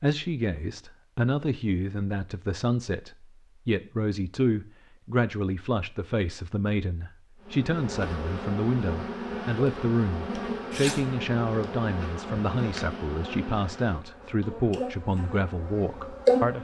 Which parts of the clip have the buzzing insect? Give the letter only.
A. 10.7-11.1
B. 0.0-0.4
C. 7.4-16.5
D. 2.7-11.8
C.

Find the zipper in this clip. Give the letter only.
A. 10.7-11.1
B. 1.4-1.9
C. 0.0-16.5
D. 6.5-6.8
A.